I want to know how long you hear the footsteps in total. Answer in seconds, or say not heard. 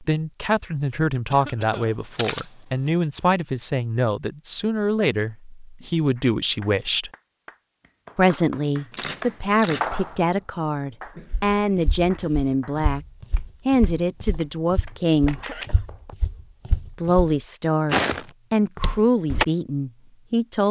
8 s.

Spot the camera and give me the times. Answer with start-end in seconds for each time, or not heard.
1.7-3.0, 8.9-10.2, 15.2-15.7.